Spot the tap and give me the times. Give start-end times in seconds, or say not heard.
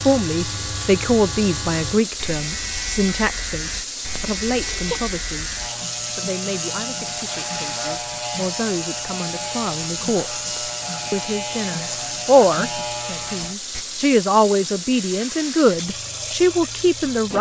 0.0-17.3.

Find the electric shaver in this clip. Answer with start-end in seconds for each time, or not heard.
0.0-13.8.